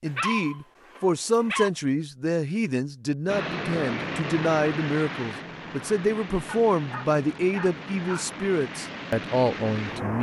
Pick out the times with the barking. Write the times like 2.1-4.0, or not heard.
0.1-1.7, 6.5-8.3.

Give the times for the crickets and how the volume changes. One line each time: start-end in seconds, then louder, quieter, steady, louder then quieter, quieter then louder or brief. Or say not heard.
not heard.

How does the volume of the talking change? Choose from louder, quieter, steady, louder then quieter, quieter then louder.
steady.